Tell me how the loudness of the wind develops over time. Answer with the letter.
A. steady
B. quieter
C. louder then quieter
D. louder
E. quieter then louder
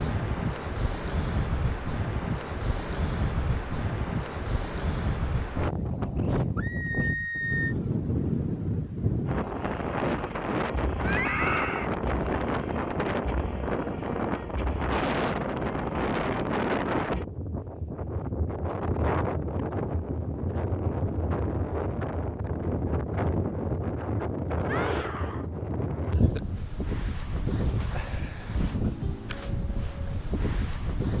A.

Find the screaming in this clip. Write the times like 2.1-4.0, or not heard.
6.5-7.8, 11.0-11.9, 24.6-25.4.